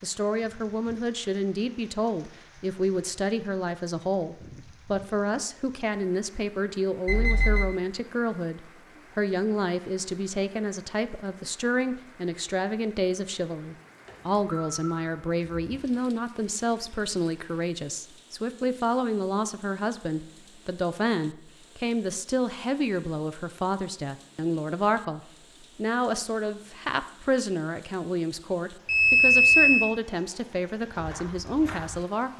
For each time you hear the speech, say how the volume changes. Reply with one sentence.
The speech can be heard from 0.0 to 32.3 s, at a steady volume.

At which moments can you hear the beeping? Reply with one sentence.
The beeping can be heard from 7.0 to 7.8 s, from 14.1 to 15.8 s and from 28.9 to 29.9 s.